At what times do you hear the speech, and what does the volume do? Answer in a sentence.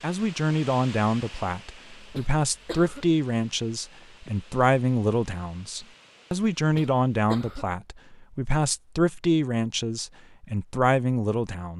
You can hear the speech from 0.0 to 11.7 s, at a steady volume.